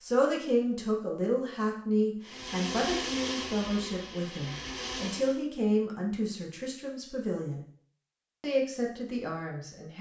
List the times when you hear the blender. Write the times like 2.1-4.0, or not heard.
2.2-5.4.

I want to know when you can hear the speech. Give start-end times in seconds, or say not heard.
0.0-7.6, 8.4-9.9.